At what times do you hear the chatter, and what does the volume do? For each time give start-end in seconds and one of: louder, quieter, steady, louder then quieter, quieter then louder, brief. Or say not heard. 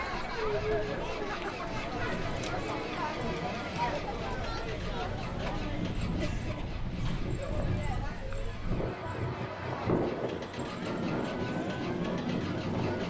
0.0-13.0 quieter.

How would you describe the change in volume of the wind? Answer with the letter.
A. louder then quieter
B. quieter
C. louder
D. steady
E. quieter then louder
C.